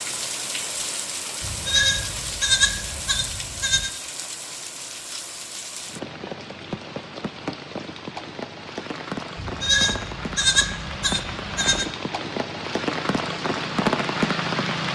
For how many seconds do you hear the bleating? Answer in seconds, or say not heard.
5 s.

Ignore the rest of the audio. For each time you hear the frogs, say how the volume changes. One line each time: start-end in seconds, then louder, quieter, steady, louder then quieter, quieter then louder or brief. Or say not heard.
not heard.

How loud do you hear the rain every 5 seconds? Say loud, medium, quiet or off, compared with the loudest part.
medium, medium, loud.